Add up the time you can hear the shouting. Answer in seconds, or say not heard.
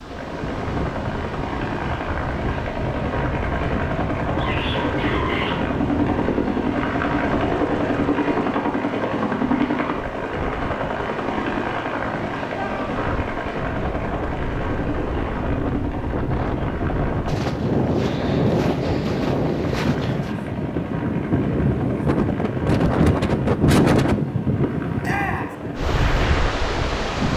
2 s.